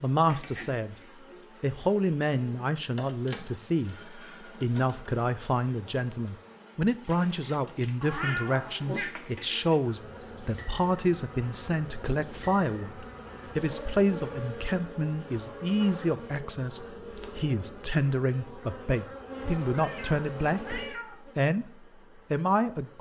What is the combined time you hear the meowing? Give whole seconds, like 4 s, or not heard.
3 s.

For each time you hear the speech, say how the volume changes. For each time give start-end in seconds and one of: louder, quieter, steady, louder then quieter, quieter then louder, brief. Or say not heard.
0.0-0.9 brief
1.6-21.7 steady
22.3-22.9 brief.